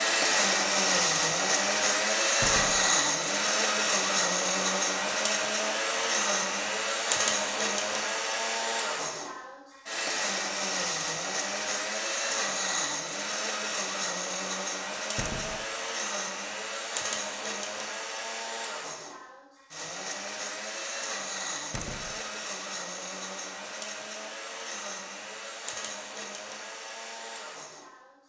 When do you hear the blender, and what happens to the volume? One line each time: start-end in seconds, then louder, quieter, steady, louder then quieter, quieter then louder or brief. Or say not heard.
0.0-28.2 quieter.